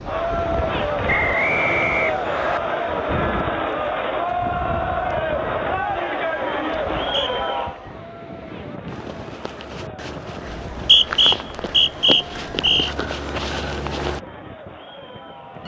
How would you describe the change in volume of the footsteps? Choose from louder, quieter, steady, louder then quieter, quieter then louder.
louder.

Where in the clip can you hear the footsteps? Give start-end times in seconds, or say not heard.
8.8-14.2.